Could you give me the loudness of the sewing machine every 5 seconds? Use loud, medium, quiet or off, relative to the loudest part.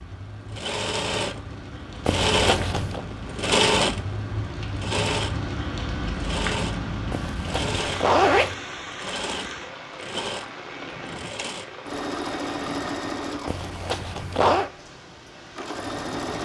loud, medium, medium, medium.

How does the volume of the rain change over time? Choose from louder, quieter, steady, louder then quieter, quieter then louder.
louder then quieter.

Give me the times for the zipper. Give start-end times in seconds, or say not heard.
2.0-3.0, 7.1-8.6, 13.4-14.7.